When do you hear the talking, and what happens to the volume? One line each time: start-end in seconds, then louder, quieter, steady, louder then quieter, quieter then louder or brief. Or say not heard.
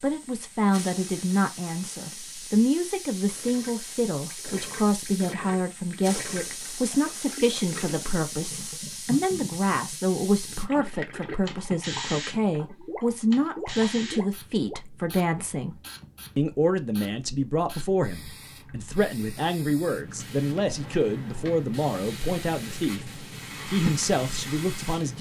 0.0-15.8 steady
16.4-25.1 steady.